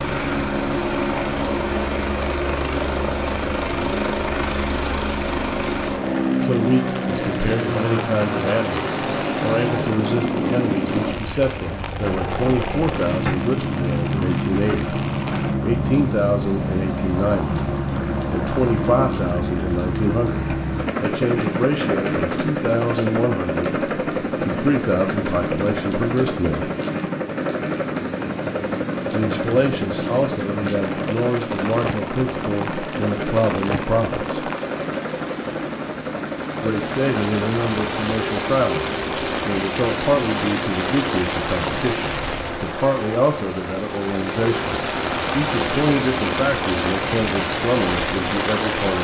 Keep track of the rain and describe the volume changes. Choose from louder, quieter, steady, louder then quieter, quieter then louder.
louder.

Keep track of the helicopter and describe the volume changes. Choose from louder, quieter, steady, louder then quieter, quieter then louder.
quieter.